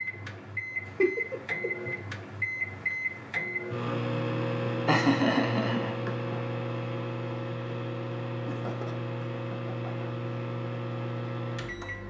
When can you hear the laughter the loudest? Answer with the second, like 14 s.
5 s.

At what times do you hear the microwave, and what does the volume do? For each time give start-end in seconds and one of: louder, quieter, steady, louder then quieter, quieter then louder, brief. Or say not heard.
0.0-12.0 steady.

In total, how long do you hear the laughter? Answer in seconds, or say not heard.
4 s.